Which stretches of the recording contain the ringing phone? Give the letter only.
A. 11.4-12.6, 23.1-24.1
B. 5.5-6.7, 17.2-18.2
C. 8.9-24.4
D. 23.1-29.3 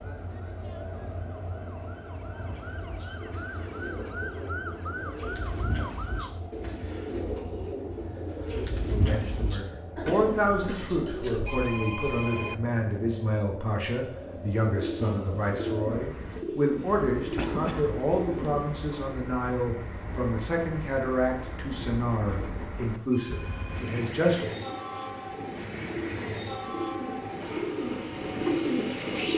A.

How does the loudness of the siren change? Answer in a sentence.
The volume of the siren goes up.